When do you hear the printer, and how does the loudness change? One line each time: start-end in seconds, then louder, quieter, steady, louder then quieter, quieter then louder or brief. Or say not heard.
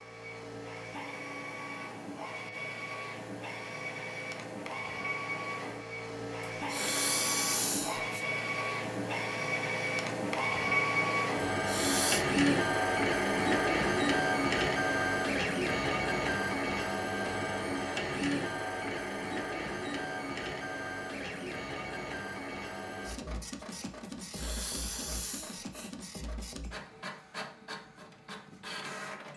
0.0-29.3 louder then quieter.